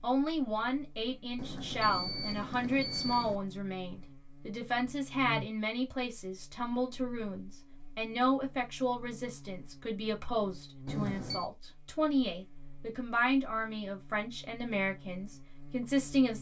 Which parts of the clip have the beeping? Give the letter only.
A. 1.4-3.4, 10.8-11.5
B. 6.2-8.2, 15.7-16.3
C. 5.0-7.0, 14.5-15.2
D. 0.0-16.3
A.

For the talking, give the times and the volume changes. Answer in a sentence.
You can hear the talking from 0.0 to 16.3 s, at a steady volume.